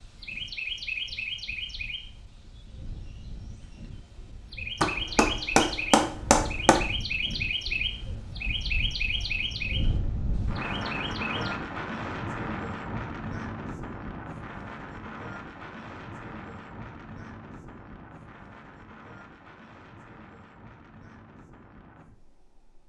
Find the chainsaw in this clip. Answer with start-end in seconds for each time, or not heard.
not heard.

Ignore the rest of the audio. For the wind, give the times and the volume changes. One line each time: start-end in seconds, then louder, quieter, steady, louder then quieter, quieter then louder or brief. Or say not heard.
0.0-22.8 louder then quieter.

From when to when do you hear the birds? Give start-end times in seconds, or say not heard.
0.0-11.6.